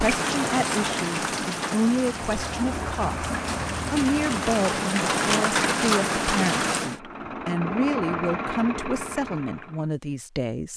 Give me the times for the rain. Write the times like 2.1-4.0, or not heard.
0.0-7.0.